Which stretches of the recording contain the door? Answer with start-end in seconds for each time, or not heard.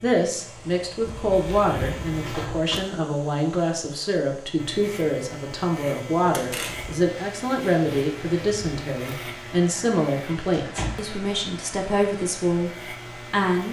1.1-2.8, 6.3-6.9, 10.6-11.2.